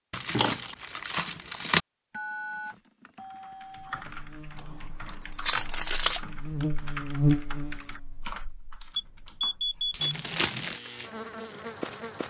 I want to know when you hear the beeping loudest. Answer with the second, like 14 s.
10 s.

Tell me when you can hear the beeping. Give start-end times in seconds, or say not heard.
2.1-4.0, 8.9-10.1.